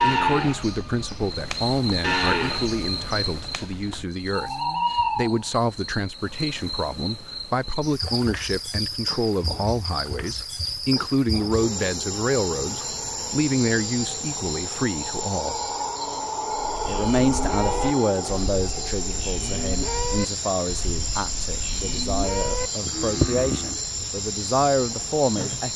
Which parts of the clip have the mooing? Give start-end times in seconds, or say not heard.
0.0-4.9, 16.8-23.8.